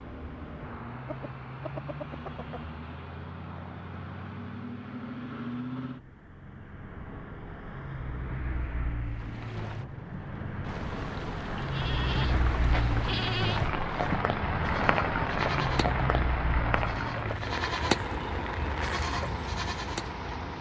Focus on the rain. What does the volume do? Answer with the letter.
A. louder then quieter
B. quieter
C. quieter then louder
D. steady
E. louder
A.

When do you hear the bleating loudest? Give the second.
18 s.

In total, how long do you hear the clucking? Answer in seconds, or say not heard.
2 s.